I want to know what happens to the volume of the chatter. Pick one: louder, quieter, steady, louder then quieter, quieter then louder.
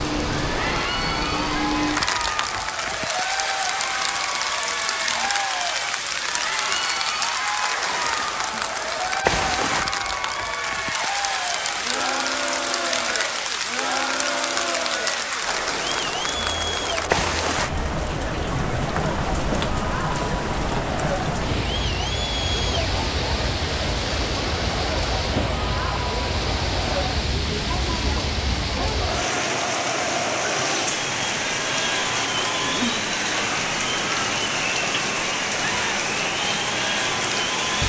steady.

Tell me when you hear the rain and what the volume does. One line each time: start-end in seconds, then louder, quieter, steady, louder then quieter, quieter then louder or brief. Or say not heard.
0.0-37.8 steady.